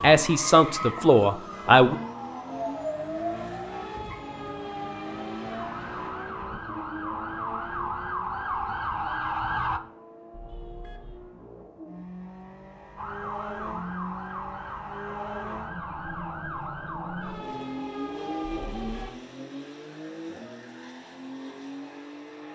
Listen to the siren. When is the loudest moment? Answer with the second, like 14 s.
9 s.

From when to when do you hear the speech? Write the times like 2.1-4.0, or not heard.
0.0-1.9.